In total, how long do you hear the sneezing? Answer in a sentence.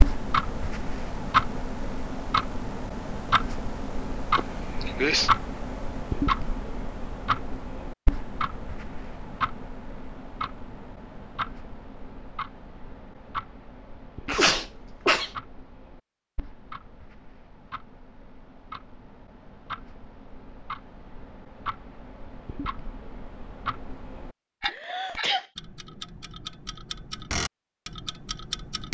The sneezing can be heard for 3 seconds in total.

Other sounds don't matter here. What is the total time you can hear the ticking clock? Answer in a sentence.
The ticking clock can be heard for 29 seconds in total.